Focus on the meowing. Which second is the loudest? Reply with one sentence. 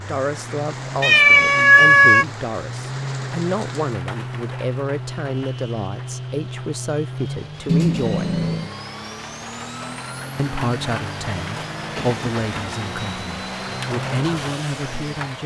The loudest moment of the meowing is at 2 seconds.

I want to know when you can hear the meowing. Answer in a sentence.
The meowing can be heard from 1.0 to 2.2 s, from 7.7 to 8.7 s and from 11.9 to 12.4 s.